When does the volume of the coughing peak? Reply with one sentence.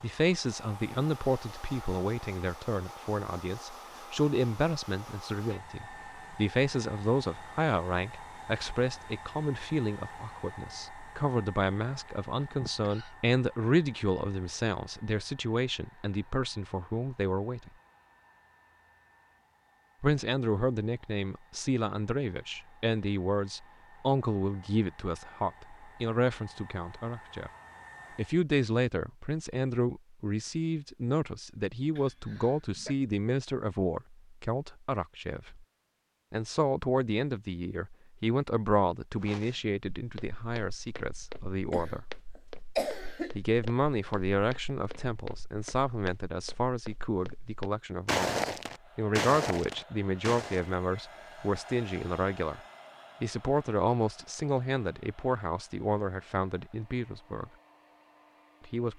The volume of the coughing peaks at 43 seconds.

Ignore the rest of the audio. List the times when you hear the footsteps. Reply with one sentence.
You can hear the footsteps from 39.2 to 50.7 s.